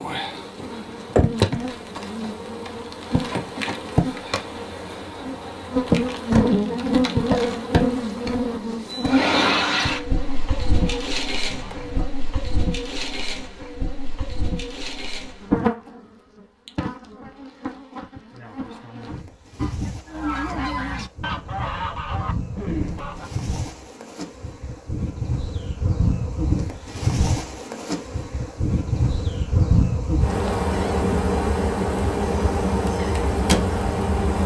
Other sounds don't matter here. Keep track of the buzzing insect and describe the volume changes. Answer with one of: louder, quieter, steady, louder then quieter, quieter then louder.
quieter then louder.